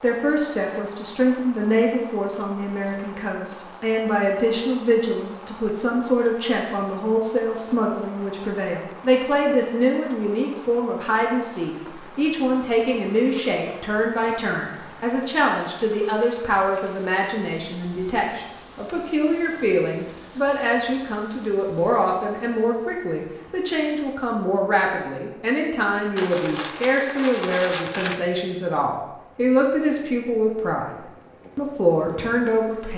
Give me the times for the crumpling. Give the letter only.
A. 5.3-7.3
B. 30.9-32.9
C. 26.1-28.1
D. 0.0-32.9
C.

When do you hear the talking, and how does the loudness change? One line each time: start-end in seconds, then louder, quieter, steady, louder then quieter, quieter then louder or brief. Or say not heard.
0.0-32.9 steady.